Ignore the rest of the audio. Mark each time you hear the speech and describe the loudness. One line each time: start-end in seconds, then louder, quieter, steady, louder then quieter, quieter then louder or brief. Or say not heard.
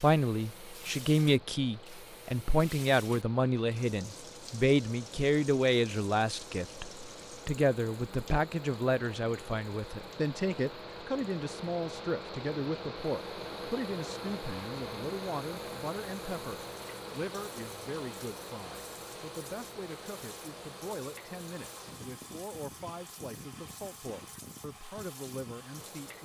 0.0-26.2 quieter.